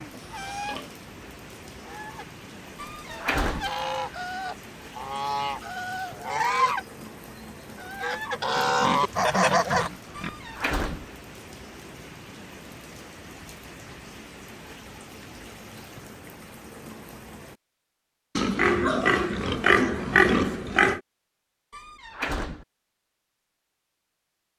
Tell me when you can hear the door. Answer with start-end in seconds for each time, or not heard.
2.8-3.7, 10.2-11.1, 21.7-22.6.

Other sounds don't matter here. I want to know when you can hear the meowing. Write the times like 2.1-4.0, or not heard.
not heard.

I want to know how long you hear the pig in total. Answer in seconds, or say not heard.
5 s.